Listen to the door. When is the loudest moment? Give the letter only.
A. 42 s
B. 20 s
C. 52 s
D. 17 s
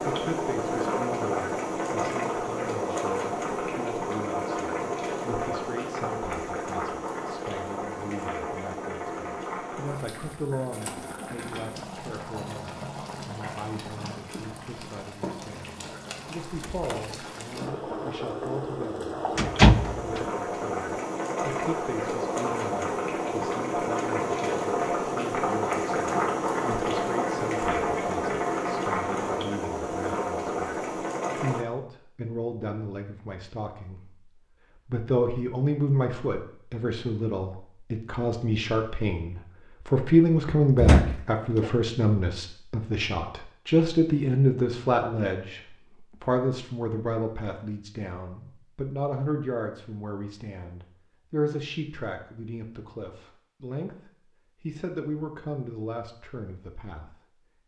B.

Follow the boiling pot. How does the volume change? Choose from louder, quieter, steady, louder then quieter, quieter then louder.
quieter then louder.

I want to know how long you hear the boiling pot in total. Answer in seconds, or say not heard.
32 s.